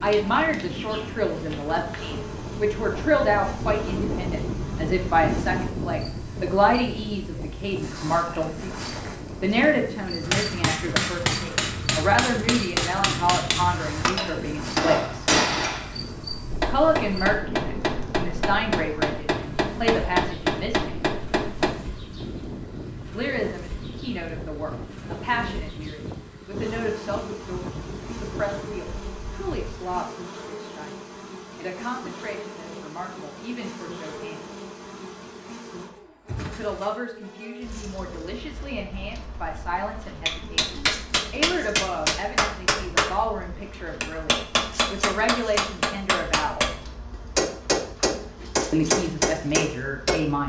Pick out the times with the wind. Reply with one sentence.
The wind can be heard from 0.0 to 30.0 s.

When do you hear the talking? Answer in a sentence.
You can hear the talking from 0.0 to 15.3 s, from 16.6 to 21.1 s, from 23.1 to 34.4 s, from 36.5 to 46.6 s and from 48.7 to 50.4 s.